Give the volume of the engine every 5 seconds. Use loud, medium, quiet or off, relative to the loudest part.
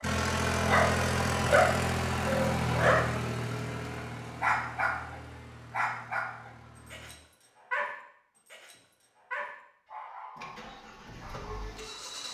loud, quiet, quiet.